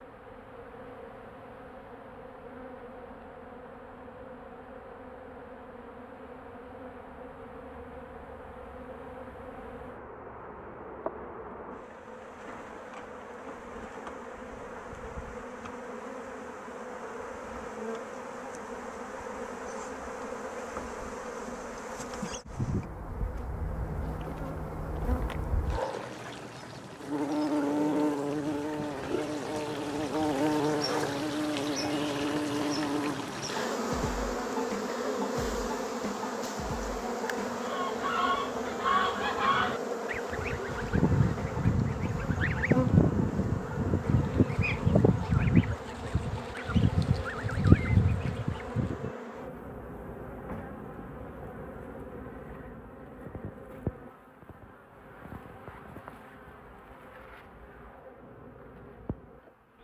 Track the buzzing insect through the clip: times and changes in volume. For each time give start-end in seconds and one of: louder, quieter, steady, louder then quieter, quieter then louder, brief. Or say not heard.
0.0-59.7 louder then quieter.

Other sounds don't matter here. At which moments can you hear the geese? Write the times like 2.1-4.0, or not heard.
37.5-49.1.